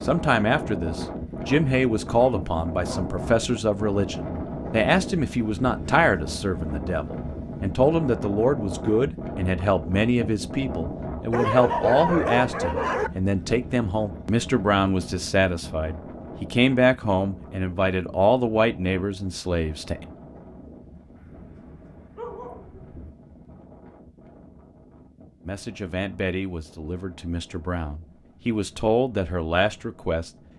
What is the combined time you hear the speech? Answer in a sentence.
You can hear the speech for 25 seconds altogether.